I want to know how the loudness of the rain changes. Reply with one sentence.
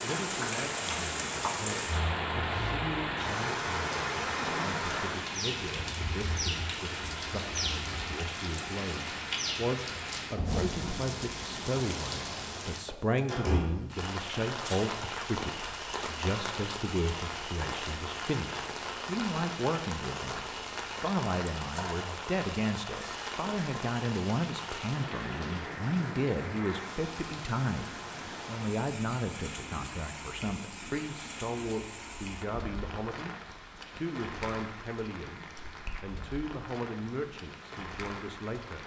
The volume of the rain goes down.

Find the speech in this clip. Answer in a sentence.
You can hear the speech from 0.0 to 38.8 s.